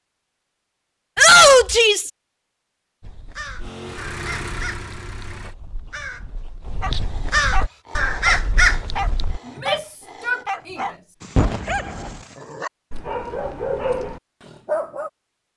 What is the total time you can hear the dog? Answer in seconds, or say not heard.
8 s.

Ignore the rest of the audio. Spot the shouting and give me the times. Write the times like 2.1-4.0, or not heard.
1.1-2.1, 9.4-10.8.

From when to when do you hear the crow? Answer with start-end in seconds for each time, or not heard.
3.0-9.4.